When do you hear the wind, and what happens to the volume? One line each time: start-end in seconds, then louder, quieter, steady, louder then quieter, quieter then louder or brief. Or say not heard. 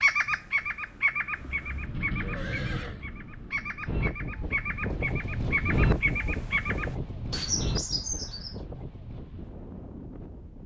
0.0-10.6 louder then quieter.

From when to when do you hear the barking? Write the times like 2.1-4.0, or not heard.
not heard.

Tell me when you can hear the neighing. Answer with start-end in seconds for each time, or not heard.
1.3-3.0.